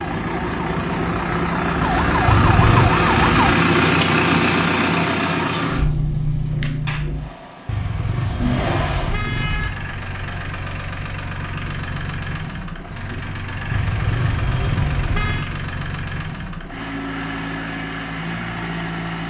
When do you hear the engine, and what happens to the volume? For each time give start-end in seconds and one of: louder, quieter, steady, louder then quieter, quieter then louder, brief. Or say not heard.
0.0-19.2 quieter.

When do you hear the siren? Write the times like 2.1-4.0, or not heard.
0.0-3.5.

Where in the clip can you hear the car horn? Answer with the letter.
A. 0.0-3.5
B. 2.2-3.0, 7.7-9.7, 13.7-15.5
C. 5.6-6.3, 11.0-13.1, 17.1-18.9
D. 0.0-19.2
B.